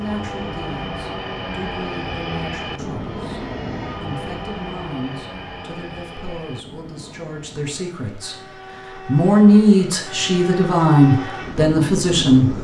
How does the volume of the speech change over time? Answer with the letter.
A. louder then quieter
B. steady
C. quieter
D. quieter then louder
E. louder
E.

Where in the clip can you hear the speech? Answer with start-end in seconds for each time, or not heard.
0.0-12.5.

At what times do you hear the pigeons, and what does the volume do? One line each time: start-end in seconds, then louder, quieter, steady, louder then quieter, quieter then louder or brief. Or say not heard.
not heard.